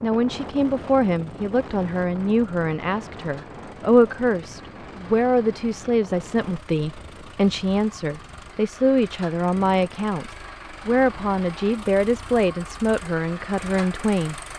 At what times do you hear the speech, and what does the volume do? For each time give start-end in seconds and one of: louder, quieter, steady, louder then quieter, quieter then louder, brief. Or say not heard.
0.0-14.3 steady.